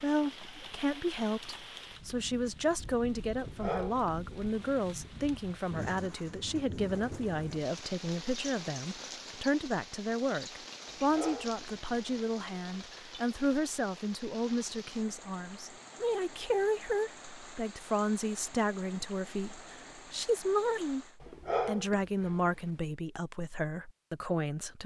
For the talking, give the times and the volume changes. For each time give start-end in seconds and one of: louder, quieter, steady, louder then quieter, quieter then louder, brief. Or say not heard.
0.0-24.8 steady.